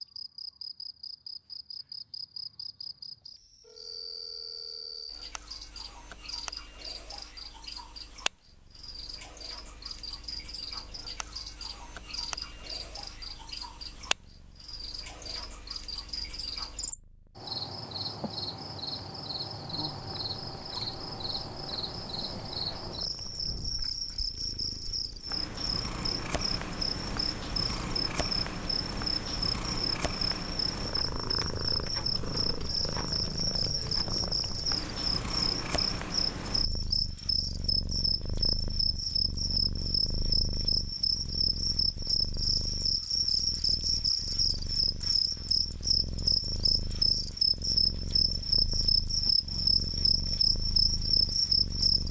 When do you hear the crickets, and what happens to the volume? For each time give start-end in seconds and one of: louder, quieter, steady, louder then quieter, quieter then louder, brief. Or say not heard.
0.0-52.0 louder.